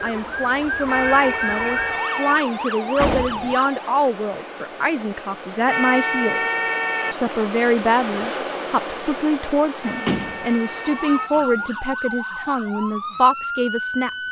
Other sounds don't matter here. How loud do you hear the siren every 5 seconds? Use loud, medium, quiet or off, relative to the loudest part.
loud, off, loud.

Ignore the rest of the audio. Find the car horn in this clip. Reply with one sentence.
You can hear the car horn from 0.8 to 2.4 s, from 5.7 to 7.2 s and from 9.8 to 11.3 s.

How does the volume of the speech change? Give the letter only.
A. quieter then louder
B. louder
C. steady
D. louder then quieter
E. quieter
C.